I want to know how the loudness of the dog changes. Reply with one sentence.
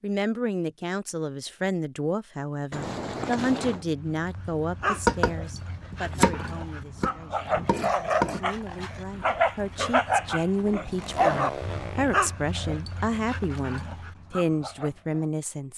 The volume of the dog goes up, then down.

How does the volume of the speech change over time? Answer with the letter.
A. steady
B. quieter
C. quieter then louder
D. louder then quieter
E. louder
C.